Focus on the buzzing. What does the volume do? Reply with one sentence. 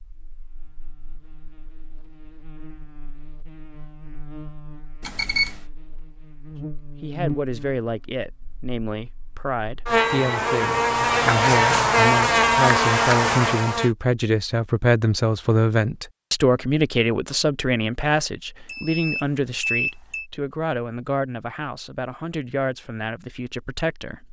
The loudness of the buzzing goes up.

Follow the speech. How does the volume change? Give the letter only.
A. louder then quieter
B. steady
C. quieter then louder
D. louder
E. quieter
A.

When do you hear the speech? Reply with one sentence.
The speech can be heard from 7.0 to 24.2 s.